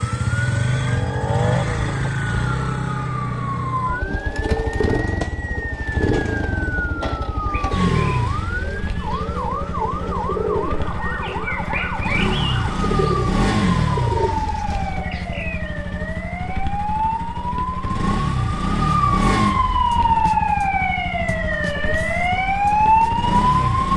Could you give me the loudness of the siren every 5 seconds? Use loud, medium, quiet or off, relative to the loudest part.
medium, medium, medium, medium, loud.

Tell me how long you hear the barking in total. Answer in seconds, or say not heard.
not heard.